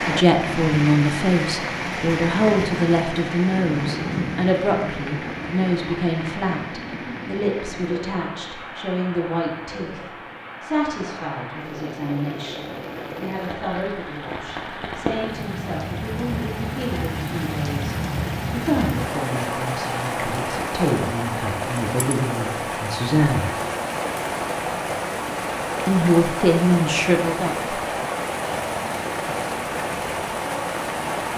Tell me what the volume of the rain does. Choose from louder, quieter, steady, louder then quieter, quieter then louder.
quieter then louder.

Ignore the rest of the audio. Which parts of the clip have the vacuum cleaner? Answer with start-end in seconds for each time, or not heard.
not heard.